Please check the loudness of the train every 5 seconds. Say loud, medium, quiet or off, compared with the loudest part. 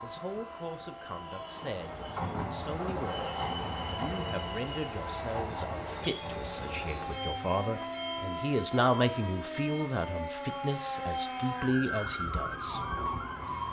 loud, loud, medium.